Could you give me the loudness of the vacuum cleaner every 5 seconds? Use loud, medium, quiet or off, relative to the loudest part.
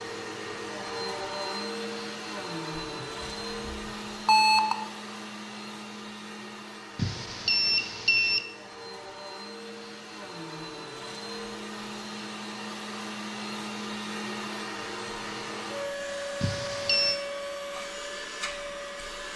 loud, medium, loud, loud.